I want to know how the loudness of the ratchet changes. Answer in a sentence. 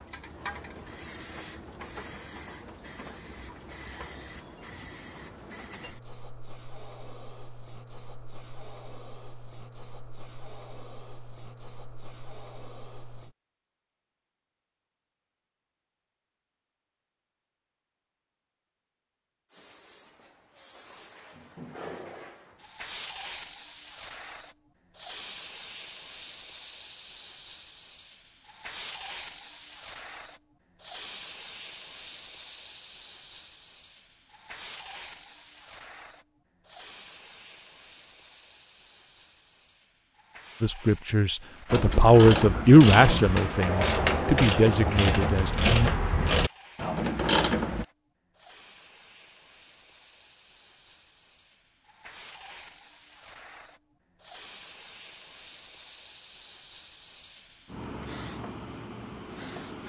The volume of the ratchet stays about the same.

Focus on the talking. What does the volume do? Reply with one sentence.
The loudness of the talking goes up, then down.